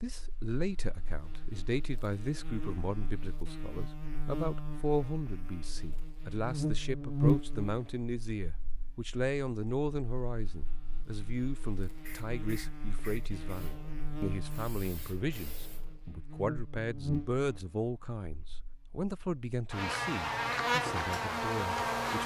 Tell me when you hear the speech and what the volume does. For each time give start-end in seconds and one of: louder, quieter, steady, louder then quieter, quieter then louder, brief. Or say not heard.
0.0-22.2 steady.